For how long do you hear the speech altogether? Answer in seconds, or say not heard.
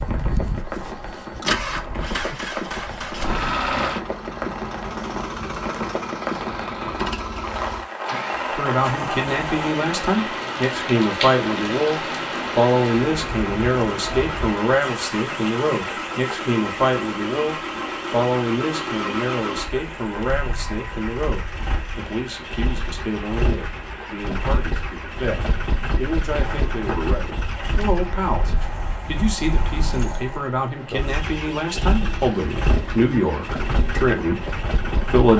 27 s.